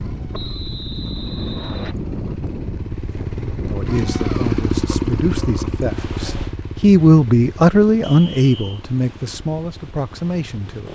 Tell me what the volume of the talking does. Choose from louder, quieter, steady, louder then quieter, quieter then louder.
louder then quieter.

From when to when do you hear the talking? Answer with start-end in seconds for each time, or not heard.
3.6-10.9.